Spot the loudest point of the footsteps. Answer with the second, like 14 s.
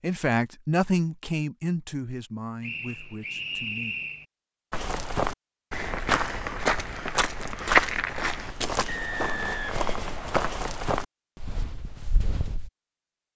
8 s.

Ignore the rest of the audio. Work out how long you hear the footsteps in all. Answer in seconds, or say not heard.
8 s.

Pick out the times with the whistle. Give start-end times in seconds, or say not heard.
2.6-4.2, 8.8-10.4.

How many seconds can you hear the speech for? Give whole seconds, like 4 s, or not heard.
4 s.